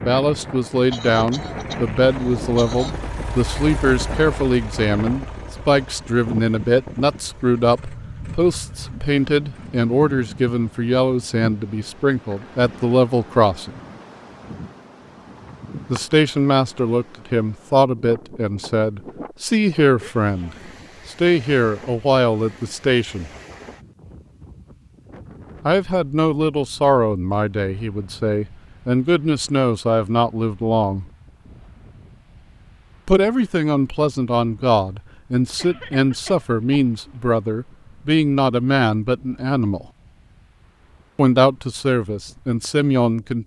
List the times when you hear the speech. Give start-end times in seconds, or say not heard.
0.0-13.8, 15.8-23.3, 25.6-31.1, 33.0-39.9, 41.1-43.4.